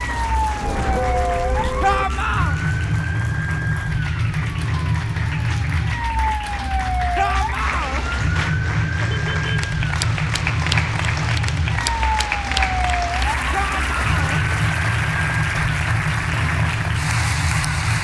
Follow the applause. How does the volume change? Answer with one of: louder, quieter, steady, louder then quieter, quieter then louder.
louder.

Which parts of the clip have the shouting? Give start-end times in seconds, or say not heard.
1.8-2.5, 7.2-8.1, 13.5-14.4.